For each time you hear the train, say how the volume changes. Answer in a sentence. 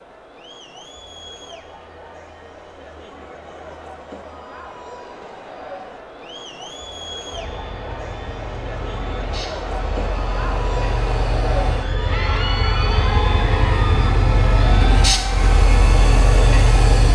You can hear the train from 7.3 to 17.1 s, getting louder.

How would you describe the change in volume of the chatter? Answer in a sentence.
The volume of the chatter goes up.